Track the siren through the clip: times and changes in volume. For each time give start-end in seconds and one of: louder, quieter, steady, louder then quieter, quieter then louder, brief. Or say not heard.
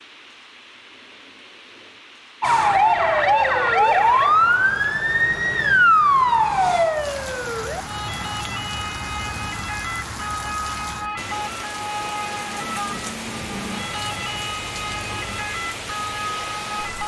2.4-17.0 quieter.